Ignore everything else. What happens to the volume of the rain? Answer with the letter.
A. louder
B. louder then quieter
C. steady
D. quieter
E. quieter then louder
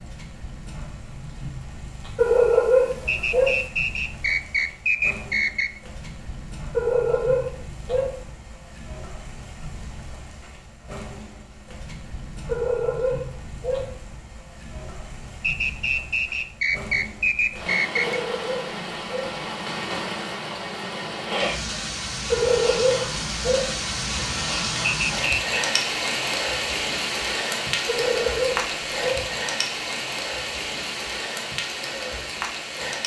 A.